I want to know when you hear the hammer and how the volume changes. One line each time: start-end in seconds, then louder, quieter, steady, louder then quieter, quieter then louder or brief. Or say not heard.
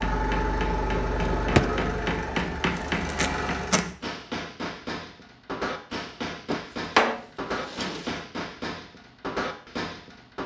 0.0-10.4 steady.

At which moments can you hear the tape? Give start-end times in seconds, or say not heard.
2.8-3.9.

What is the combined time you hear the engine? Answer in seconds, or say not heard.
4 s.